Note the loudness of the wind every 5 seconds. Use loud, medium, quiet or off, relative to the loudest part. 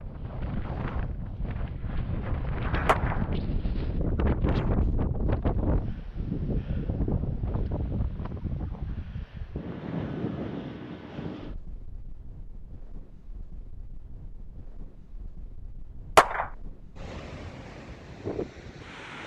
loud, loud, medium, medium.